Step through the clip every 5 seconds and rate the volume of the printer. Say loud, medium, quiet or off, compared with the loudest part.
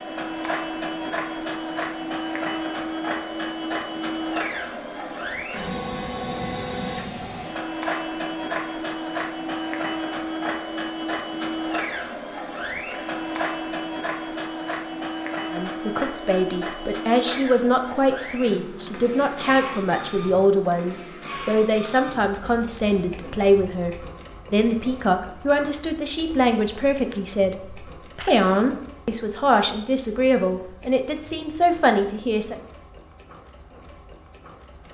loud, loud, loud, loud, medium, quiet, quiet.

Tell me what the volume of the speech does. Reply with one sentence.
The loudness of the speech stays about the same.